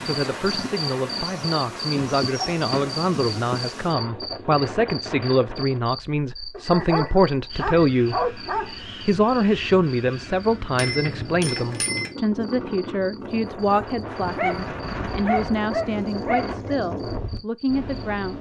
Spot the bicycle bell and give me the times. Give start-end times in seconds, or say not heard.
10.8-12.1.